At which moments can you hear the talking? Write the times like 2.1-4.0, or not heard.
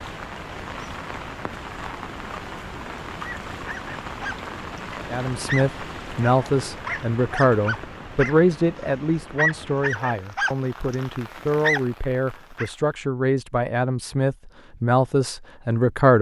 5.1-16.1.